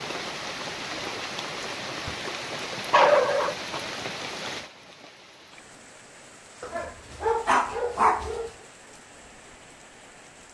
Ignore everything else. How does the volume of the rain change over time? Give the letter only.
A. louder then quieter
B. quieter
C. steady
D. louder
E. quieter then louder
B.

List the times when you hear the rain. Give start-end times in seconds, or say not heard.
0.0-10.4.